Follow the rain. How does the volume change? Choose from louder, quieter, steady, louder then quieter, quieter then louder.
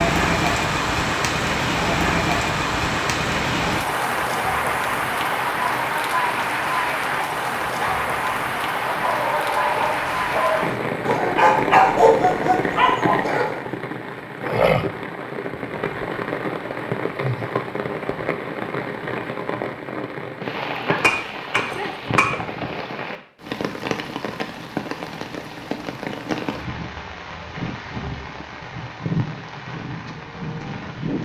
quieter.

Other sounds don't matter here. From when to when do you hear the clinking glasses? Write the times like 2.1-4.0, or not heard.
21.0-22.3.